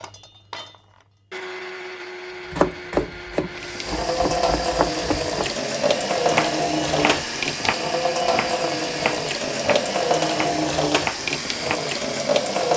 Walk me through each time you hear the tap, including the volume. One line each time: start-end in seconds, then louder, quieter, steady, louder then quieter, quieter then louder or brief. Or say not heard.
3.5-12.7 steady.